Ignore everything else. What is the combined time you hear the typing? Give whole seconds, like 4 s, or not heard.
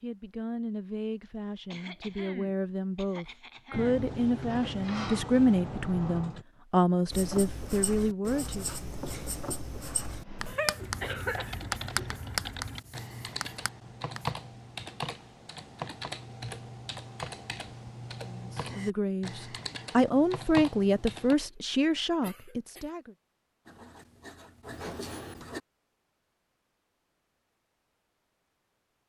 11 s.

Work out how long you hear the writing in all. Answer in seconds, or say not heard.
9 s.